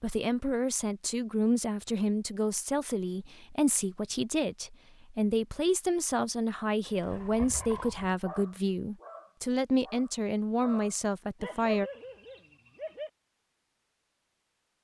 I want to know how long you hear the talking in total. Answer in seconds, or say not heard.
12 s.